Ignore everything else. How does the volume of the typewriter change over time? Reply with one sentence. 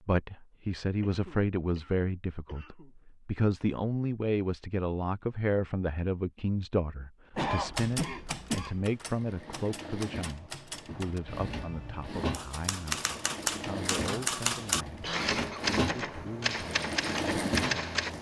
The volume of the typewriter goes up.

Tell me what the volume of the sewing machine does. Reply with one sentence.
The volume of the sewing machine goes up.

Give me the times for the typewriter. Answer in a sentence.
You can hear the typewriter from 7.8 to 18.1 s.